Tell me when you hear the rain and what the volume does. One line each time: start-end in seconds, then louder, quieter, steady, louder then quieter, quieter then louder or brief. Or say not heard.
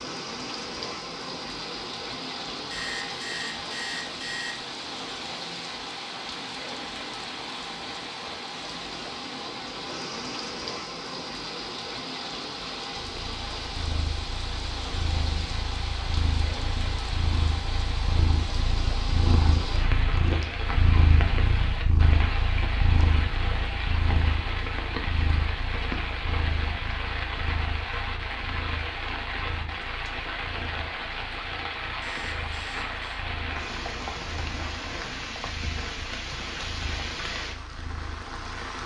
0.0-38.8 steady.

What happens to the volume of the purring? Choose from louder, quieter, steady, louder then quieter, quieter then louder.
louder then quieter.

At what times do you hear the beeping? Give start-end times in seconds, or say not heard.
2.7-4.7, 32.0-33.2.